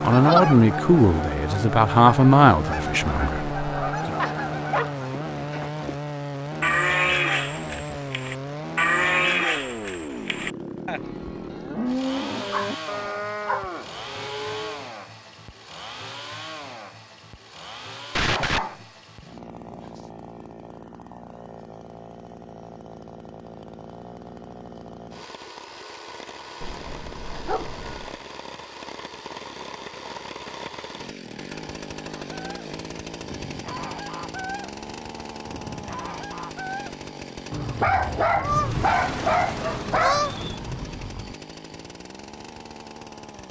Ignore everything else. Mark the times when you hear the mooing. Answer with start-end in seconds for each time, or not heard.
6.6-14.8.